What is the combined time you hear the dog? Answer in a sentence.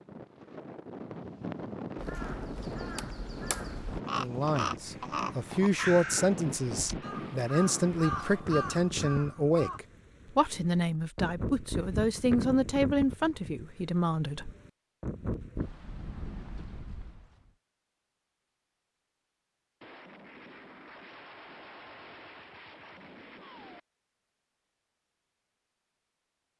You can't hear the dog here.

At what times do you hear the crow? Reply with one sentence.
The crow can be heard from 1.9 to 9.8 s.